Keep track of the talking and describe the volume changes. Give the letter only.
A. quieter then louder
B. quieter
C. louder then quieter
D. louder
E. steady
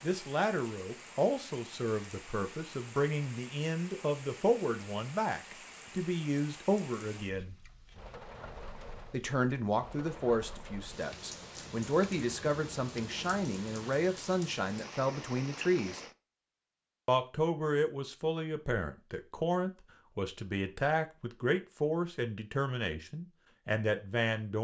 E.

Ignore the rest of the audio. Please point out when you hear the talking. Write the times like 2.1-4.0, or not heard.
0.0-7.5, 9.1-16.0, 17.1-24.6.